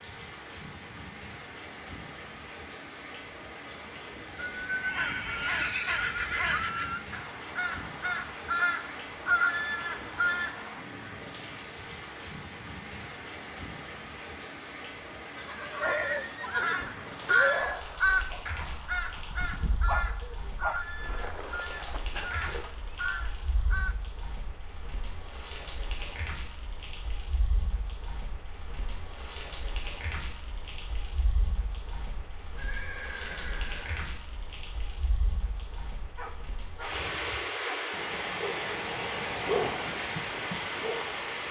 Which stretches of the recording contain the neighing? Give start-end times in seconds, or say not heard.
4.3-7.0, 15.3-17.9, 32.5-34.0.